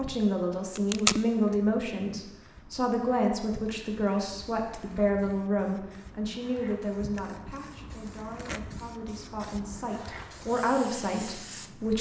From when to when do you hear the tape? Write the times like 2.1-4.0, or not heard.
0.8-1.2, 8.1-8.6.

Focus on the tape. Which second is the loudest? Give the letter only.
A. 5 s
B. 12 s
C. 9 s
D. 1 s
D.